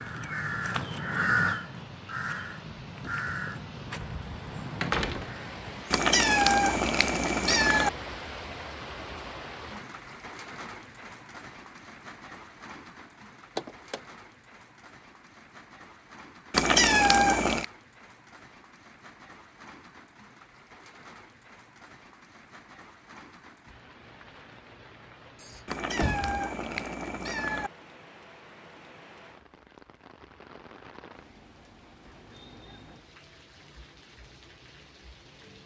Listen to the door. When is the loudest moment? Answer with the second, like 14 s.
5 s.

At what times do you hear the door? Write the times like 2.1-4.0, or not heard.
4.8-5.3, 13.6-14.0, 25.4-26.4.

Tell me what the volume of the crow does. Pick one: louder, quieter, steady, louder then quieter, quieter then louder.
quieter.